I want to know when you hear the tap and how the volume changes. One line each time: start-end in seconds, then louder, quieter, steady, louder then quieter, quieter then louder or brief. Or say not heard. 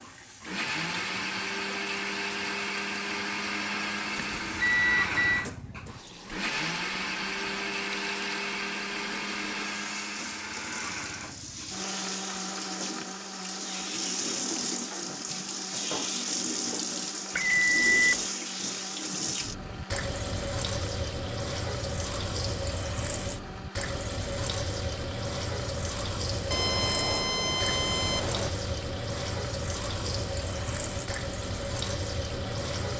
0.0-32.9 louder.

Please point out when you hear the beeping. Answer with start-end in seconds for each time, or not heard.
4.2-5.5, 17.3-18.2, 26.5-28.5.